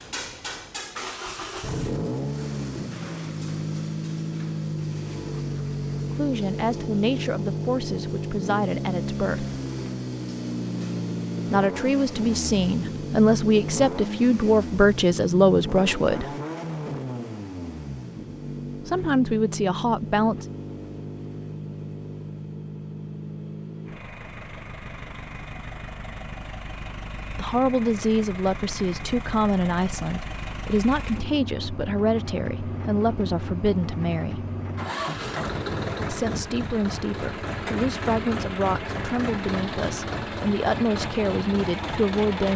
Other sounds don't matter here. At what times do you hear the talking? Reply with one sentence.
The talking can be heard from 6.1 to 9.6 s, from 11.5 to 16.3 s, from 18.9 to 20.4 s, from 27.3 to 34.5 s and from 36.0 to 42.5 s.